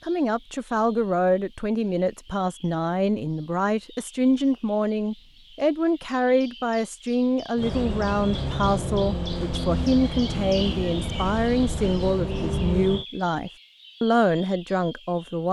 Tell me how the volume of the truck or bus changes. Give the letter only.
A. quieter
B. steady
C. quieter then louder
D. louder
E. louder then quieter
B.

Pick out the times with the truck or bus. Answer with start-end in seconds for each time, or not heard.
7.5-13.1.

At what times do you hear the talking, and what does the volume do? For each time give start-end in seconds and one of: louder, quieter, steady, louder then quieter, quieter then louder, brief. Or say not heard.
0.0-15.4 steady.